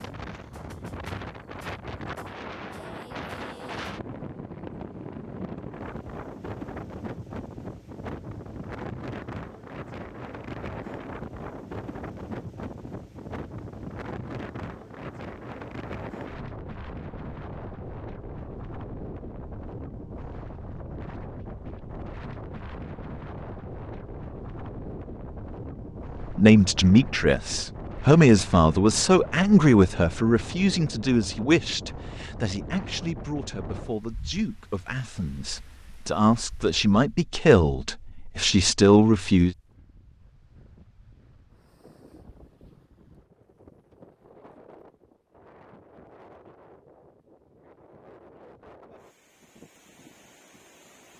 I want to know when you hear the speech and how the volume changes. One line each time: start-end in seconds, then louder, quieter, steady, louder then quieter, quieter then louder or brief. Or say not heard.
26.2-39.5 quieter then louder.